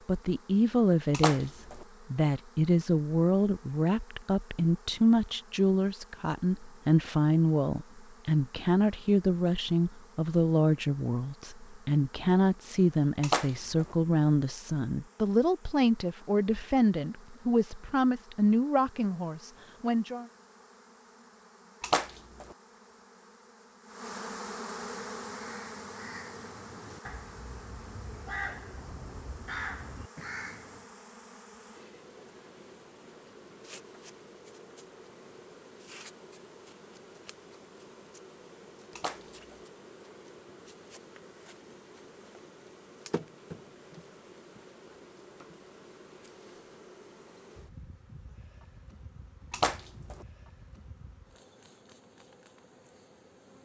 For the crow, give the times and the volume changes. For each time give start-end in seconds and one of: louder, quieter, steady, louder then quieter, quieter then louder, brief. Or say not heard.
24.9-30.9 louder.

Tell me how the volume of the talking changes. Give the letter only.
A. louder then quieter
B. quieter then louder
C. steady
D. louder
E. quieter
C.